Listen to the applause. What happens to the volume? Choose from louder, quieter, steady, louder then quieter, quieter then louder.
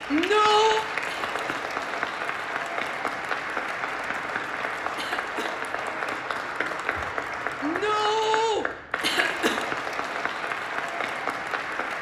steady.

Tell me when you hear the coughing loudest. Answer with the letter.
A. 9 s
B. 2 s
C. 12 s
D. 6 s
A.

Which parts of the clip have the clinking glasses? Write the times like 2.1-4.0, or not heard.
not heard.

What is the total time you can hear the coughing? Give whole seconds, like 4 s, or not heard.
2 s.